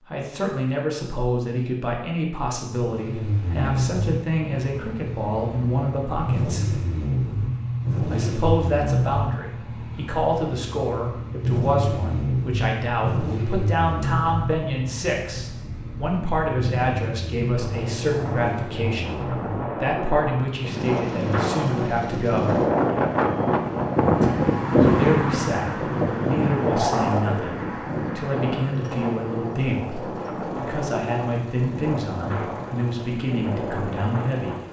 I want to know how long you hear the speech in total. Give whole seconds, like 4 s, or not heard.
31 s.